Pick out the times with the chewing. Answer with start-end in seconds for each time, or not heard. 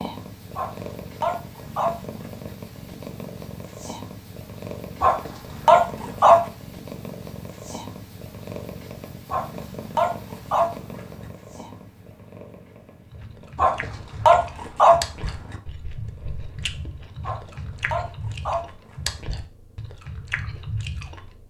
13.1-21.3.